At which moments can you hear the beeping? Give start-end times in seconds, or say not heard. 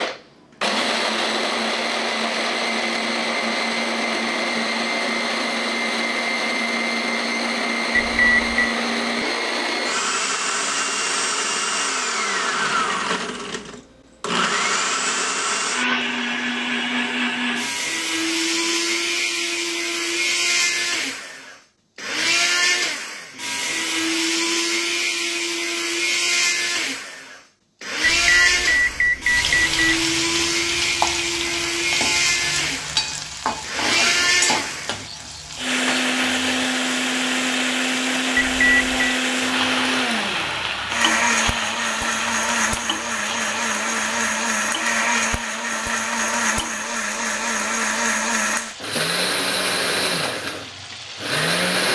7.9-8.8, 28.0-29.8, 38.4-39.0.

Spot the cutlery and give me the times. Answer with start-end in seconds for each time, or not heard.
not heard.